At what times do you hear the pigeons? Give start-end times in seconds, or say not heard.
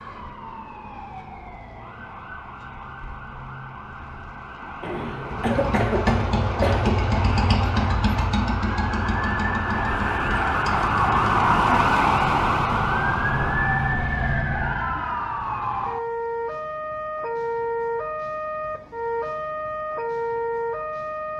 not heard.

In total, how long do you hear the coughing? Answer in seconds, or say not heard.
2 s.